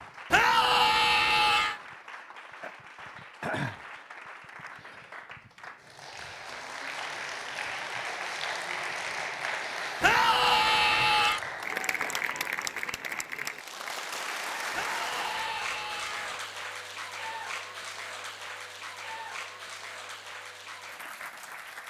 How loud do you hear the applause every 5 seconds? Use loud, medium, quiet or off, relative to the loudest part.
medium, loud, loud, loud, medium.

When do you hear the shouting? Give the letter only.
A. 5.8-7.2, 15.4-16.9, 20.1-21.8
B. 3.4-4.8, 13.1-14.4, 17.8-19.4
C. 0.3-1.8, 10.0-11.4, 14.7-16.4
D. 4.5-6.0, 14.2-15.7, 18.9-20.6
C.